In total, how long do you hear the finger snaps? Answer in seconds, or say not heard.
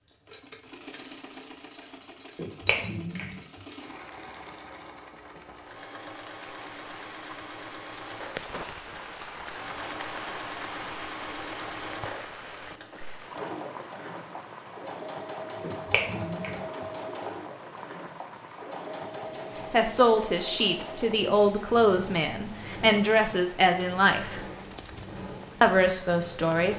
2 s.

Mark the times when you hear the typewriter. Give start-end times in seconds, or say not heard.
not heard.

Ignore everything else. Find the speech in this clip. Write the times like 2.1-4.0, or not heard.
19.7-24.4, 25.6-26.7.